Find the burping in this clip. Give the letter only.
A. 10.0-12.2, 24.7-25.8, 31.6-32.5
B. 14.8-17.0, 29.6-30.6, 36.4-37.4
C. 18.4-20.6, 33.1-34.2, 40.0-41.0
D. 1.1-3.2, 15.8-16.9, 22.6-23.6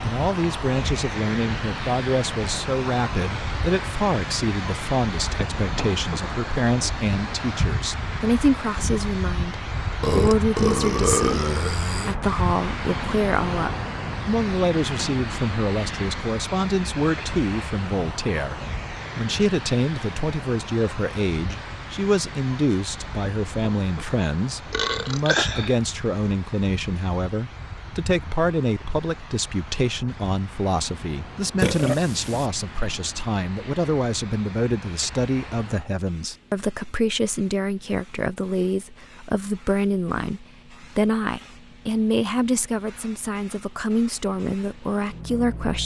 A.